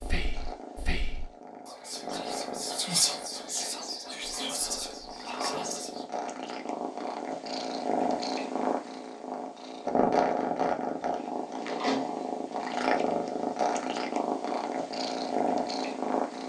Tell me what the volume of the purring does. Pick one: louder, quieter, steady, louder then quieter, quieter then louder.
louder.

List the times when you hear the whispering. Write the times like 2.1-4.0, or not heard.
0.0-6.0.